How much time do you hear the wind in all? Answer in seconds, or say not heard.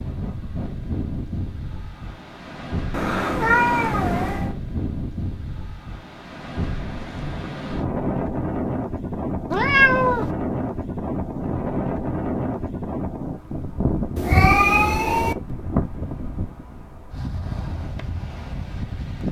19 s.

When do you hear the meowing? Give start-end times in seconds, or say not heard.
2.9-4.5, 9.5-10.3, 14.2-15.3.